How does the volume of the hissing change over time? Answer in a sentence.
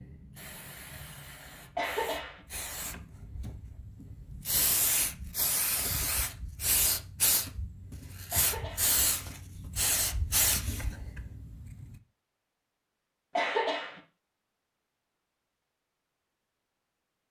The loudness of the hissing goes up.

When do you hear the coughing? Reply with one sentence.
You can hear the coughing from 1.8 to 2.4 s, from 8.3 to 8.9 s and from 13.3 to 14.0 s.